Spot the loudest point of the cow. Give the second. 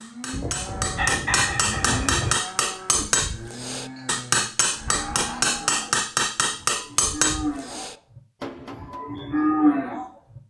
10 s.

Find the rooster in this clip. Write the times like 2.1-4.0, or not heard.
0.3-2.4.